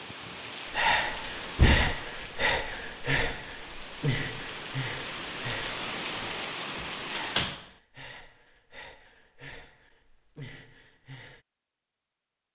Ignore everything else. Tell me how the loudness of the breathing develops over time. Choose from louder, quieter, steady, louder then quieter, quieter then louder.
quieter.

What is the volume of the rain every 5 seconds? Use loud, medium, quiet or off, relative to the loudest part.
medium, loud, off.